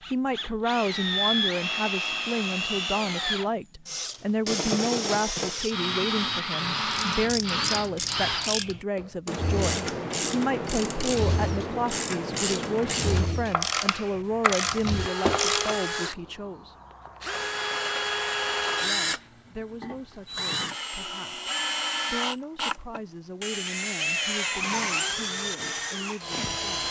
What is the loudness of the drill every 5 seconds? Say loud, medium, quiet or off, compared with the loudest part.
loud, loud, medium, loud, loud, loud.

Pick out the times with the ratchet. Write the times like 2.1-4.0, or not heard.
6.8-15.8.